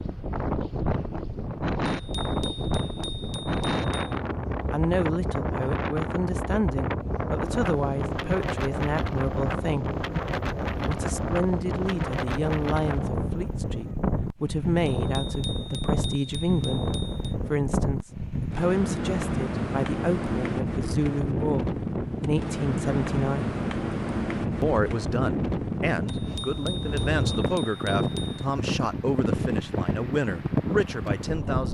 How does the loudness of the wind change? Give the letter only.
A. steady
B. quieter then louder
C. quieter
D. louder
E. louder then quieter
A.